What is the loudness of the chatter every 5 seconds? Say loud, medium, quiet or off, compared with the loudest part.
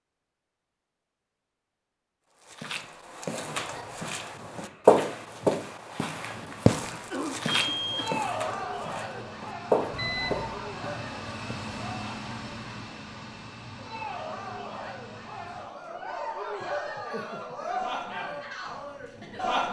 off, loud, medium, loud.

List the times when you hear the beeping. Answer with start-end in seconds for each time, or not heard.
7.5-8.2, 9.9-10.6.